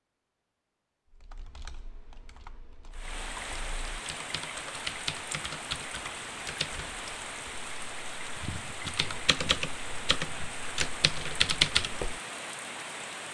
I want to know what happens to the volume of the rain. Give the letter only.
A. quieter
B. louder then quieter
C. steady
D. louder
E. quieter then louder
C.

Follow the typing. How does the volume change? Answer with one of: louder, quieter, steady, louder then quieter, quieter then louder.
louder.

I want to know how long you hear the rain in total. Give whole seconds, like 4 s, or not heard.
10 s.